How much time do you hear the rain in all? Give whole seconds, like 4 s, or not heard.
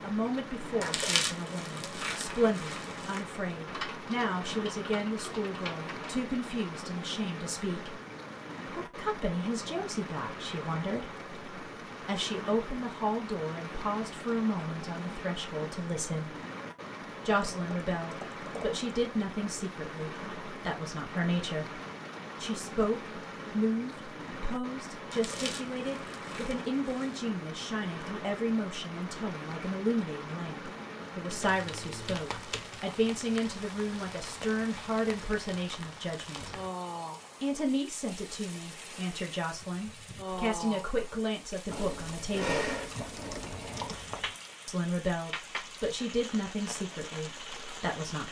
48 s.